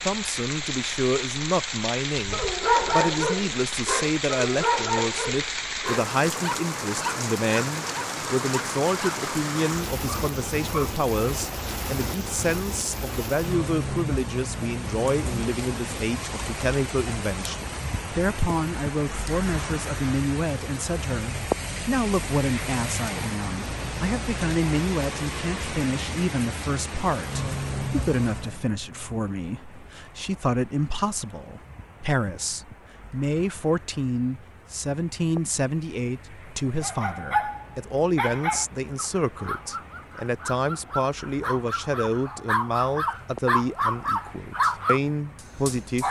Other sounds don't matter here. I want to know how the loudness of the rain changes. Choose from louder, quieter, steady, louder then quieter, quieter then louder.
quieter.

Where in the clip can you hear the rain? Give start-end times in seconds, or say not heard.
0.0-46.0.